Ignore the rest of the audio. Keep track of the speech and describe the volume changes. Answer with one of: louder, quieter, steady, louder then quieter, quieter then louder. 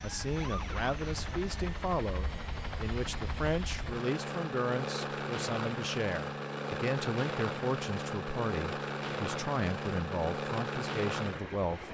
steady.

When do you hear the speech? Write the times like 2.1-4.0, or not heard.
0.0-11.8.